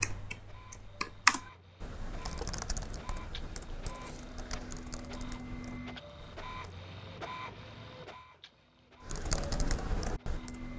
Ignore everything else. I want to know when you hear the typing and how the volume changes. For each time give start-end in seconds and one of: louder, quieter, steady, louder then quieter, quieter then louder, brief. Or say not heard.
0.0-6.8 quieter
9.0-10.7 brief.